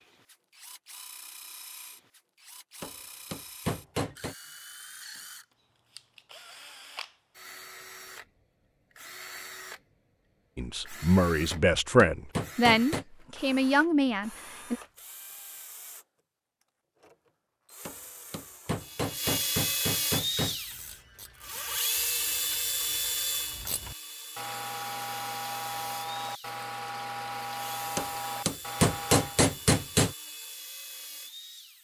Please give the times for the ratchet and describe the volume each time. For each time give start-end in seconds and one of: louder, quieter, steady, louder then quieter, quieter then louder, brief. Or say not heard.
20.1-29.4 louder.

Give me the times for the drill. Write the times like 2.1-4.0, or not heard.
0.0-16.1, 16.9-31.8.